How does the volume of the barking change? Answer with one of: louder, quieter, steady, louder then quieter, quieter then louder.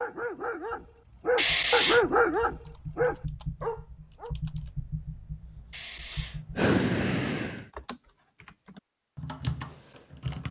louder then quieter.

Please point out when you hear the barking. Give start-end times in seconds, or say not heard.
0.0-4.3.